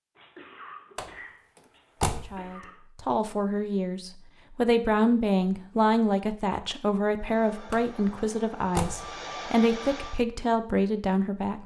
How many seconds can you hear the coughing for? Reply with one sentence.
You can hear the coughing for 3 seconds altogether.